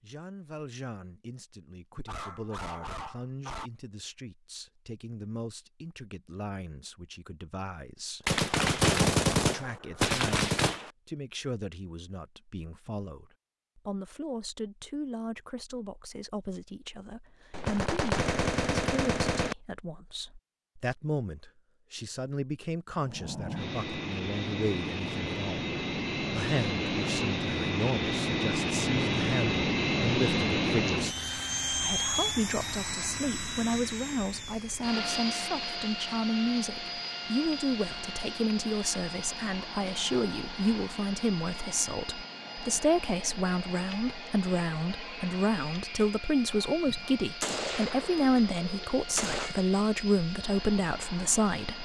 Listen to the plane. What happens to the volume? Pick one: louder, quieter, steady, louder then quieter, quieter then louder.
quieter.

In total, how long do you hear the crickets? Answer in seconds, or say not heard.
not heard.